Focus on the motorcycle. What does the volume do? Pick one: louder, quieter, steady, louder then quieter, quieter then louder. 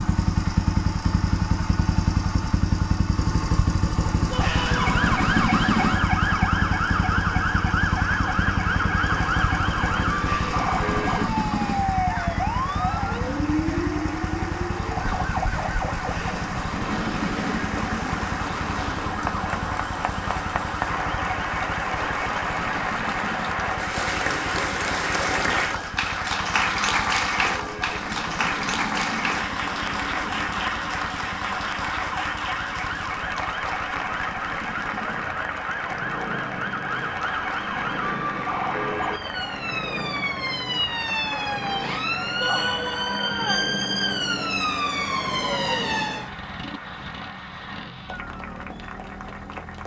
quieter.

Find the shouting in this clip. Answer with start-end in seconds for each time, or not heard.
4.3-5.0, 42.4-43.8.